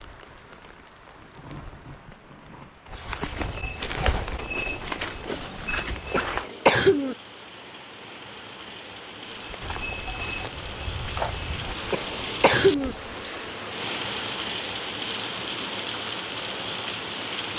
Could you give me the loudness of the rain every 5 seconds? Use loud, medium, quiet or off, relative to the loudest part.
quiet, quiet, loud, loud.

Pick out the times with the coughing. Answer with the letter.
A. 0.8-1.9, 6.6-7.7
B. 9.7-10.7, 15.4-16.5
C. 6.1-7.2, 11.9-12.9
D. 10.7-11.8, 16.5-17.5
C.